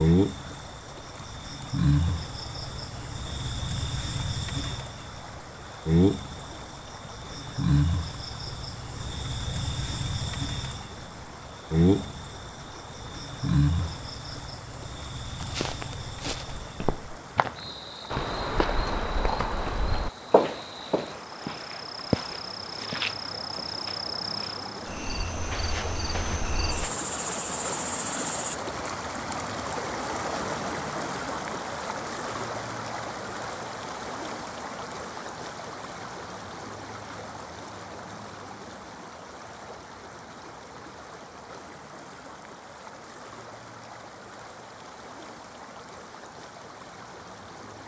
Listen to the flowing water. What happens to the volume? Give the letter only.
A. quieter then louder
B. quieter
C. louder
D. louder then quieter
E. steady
D.